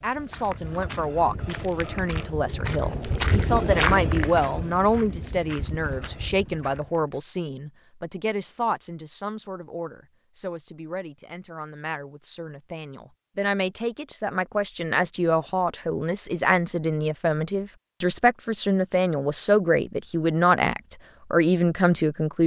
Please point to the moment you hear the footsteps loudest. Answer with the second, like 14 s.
4 s.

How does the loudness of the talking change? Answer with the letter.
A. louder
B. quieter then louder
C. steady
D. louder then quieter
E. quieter
B.